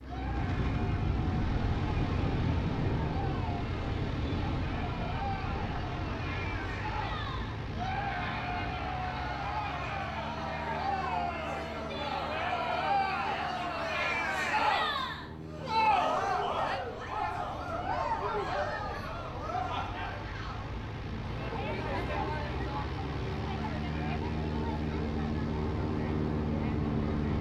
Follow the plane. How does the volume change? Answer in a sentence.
The volume of the plane goes down, then up.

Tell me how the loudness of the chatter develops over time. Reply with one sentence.
The loudness of the chatter goes up, then down.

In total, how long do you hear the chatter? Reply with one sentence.
The chatter can be heard for 27 seconds in total.